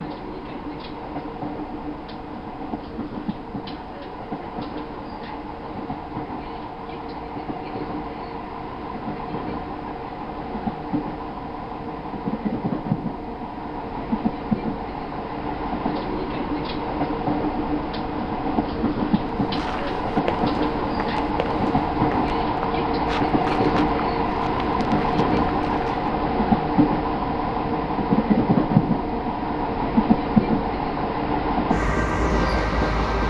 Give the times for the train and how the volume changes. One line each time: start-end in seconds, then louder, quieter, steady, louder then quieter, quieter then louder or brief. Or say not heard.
0.0-33.2 louder.